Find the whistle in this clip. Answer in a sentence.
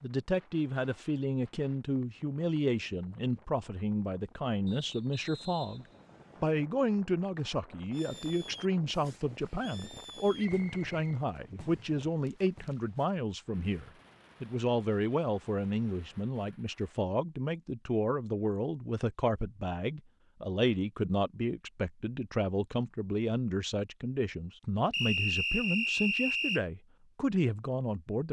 You can hear the whistle from 4.7 to 6.7 s, from 10.3 to 11.7 s and from 24.9 to 26.6 s.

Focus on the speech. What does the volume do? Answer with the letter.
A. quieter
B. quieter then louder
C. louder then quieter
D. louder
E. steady
E.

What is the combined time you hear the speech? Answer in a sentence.
The speech can be heard for 28 seconds in total.